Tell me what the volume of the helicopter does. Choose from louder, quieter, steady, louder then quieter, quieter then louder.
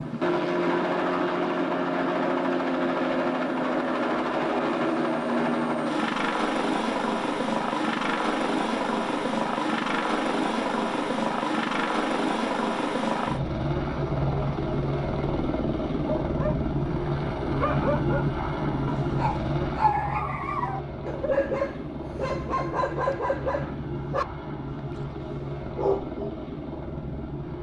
quieter.